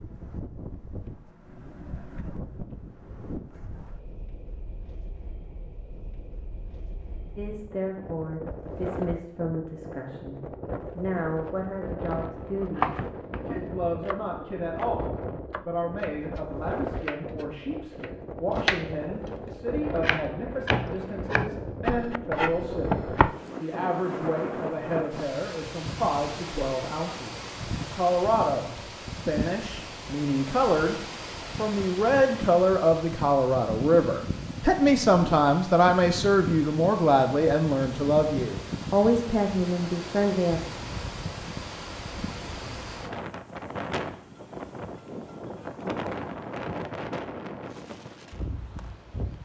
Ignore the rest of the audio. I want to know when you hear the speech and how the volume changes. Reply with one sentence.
The speech can be heard from 7.3 to 40.6 s, getting louder.